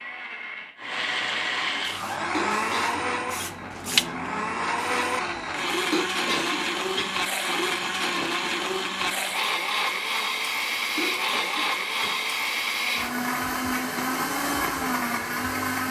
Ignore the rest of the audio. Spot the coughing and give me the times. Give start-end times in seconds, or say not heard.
2.3-3.5, 5.9-7.2, 10.9-12.2.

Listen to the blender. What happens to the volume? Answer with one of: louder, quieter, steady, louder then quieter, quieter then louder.
steady.